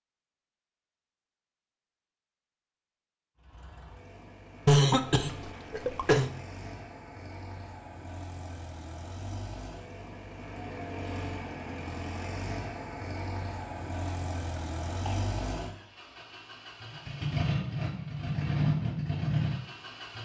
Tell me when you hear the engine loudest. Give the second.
19 s.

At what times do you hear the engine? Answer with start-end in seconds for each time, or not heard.
3.4-20.1.